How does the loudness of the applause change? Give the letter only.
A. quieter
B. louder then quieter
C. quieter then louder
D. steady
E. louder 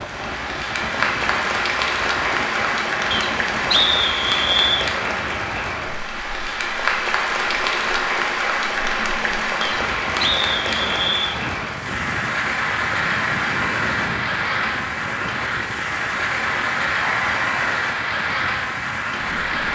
D.